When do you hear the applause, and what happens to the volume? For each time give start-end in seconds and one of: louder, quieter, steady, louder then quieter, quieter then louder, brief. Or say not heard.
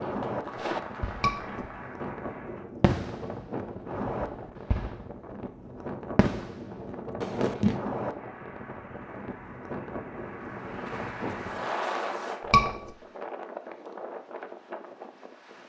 0.0-2.6 brief
8.1-12.4 louder.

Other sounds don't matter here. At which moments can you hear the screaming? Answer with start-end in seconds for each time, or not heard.
1.1-1.6, 12.4-12.9.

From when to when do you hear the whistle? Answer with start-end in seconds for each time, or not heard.
not heard.